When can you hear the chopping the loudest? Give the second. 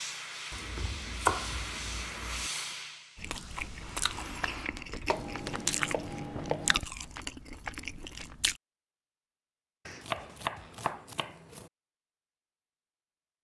1 s.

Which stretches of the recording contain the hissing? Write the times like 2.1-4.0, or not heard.
0.0-3.4.